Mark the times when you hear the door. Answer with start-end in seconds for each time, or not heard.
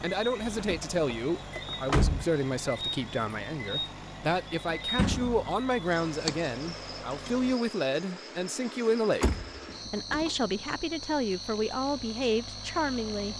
0.4-2.2, 5.0-5.5, 9.2-10.3.